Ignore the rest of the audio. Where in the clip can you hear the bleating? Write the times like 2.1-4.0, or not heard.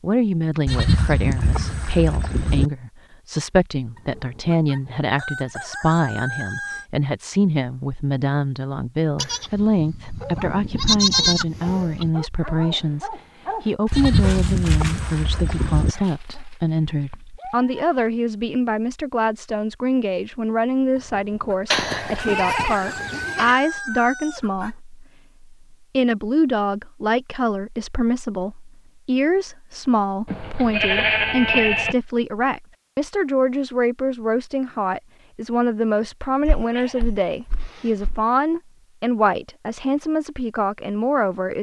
0.7-2.7, 9.2-12.1, 13.9-15.9, 21.7-23.6, 30.2-31.9, 36.5-38.2.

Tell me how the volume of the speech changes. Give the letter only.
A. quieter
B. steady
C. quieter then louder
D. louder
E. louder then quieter
B.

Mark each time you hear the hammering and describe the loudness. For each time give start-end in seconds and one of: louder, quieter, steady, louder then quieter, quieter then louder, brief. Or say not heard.
not heard.